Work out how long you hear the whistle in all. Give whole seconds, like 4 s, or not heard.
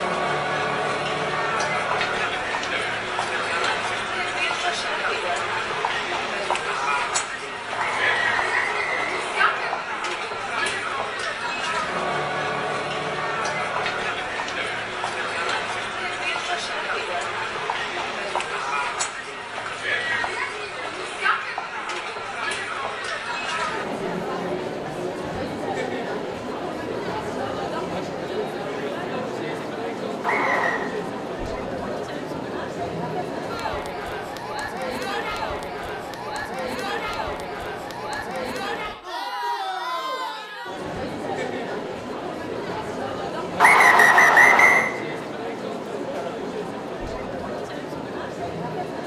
4 s.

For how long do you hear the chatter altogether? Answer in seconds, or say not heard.
49 s.